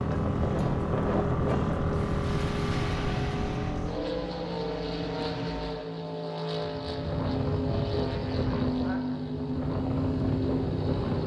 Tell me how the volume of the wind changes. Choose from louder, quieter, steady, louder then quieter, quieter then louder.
quieter then louder.